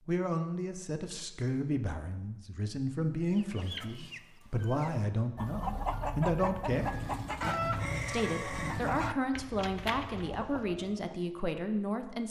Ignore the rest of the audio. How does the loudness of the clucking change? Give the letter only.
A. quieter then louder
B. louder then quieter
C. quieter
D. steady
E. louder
B.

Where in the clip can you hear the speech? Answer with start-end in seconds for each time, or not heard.
0.1-7.1, 8.1-12.2.